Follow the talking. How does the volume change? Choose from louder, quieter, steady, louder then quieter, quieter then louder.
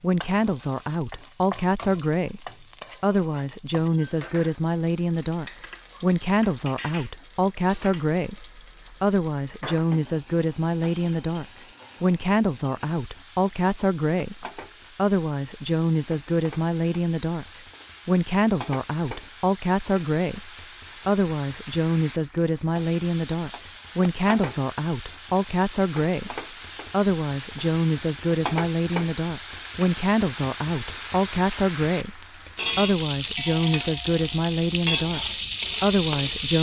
steady.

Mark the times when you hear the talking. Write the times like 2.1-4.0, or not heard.
0.0-17.4, 18.1-36.5.